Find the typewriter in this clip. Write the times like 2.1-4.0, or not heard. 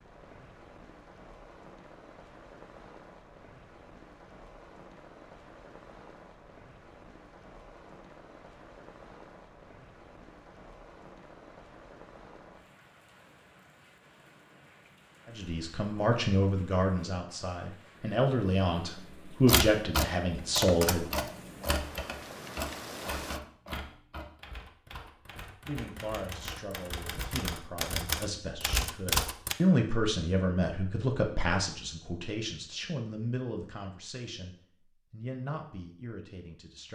19.4-29.6.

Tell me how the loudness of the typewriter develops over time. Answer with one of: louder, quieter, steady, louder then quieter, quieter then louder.
quieter then louder.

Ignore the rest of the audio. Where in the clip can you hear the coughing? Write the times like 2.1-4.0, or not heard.
not heard.